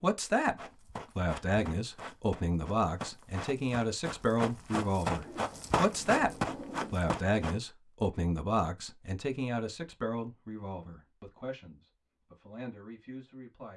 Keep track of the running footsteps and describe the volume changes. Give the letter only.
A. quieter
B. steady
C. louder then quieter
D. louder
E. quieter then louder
D.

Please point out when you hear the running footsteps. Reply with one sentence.
The running footsteps can be heard from 0.6 to 7.5 s.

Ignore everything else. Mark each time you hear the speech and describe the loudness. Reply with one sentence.
You can hear the speech briefly from 0.0 to 0.6 s; and from 1.1 to 13.7 s, getting quieter.